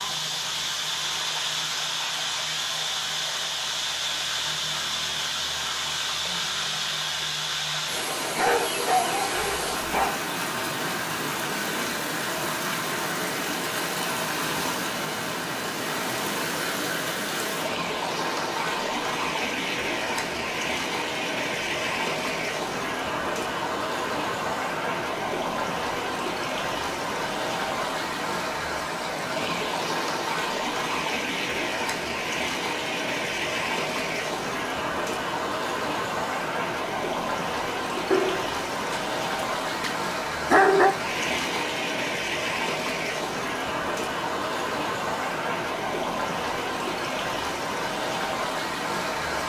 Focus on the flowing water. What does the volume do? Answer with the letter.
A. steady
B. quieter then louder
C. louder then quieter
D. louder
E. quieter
A.